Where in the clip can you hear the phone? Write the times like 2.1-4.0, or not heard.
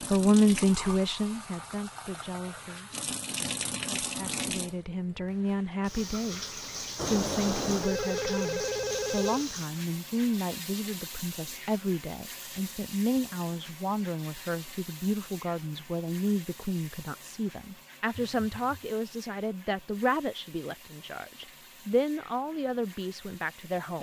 7.0-9.4, 18.1-18.9.